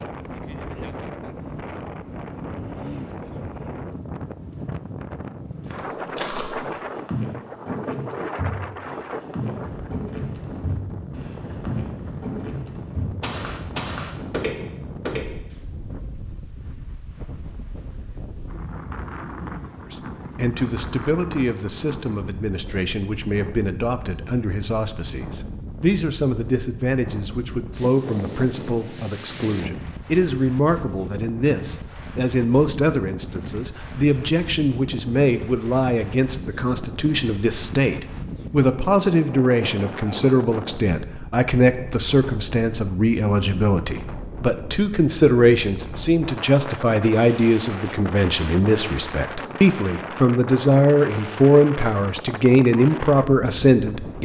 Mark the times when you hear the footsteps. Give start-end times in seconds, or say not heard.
5.7-15.2.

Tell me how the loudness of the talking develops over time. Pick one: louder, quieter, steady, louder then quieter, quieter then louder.
louder.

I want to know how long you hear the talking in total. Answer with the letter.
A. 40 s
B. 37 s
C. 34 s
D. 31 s
C.